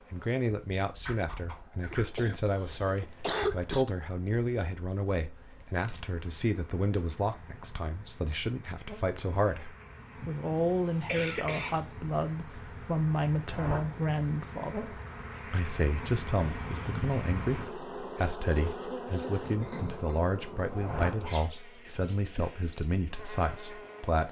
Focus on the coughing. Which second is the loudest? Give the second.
3 s.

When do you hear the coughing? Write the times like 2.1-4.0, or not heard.
1.8-3.9, 10.2-12.0, 19.6-20.3.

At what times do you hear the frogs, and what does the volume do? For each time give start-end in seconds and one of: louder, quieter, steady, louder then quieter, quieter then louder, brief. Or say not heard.
not heard.